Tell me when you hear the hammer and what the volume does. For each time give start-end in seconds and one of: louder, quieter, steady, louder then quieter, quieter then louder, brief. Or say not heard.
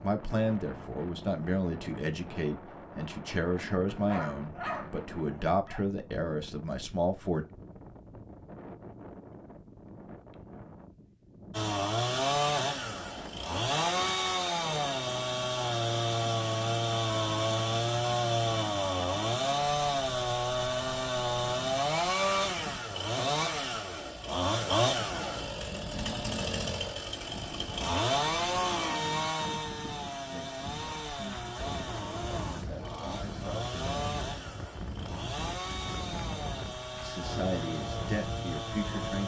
not heard.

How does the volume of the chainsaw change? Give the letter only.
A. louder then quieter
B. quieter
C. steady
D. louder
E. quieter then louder
B.